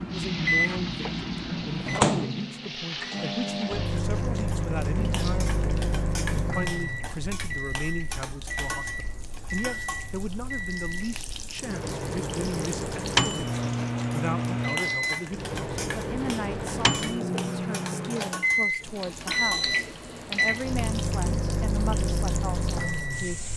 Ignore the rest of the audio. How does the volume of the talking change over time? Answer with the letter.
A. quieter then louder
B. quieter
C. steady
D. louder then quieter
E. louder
C.